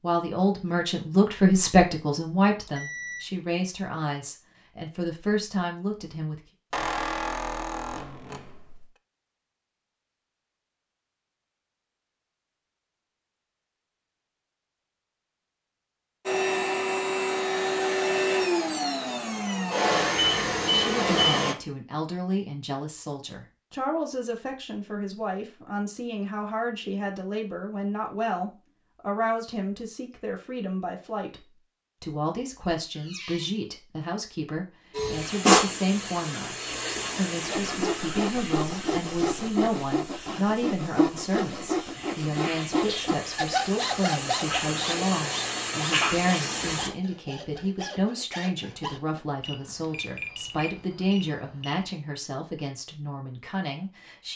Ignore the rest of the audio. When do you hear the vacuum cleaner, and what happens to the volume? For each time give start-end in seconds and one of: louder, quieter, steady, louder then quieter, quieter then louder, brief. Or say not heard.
16.2-21.6 steady
34.9-46.9 quieter then louder.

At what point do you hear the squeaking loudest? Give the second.
7 s.